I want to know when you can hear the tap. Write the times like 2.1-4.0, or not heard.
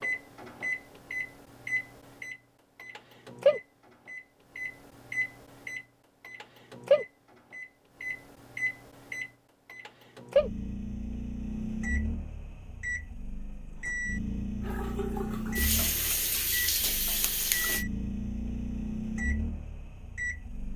14.6-17.9.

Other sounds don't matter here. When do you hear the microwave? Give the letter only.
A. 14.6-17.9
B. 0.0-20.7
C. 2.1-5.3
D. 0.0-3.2
B.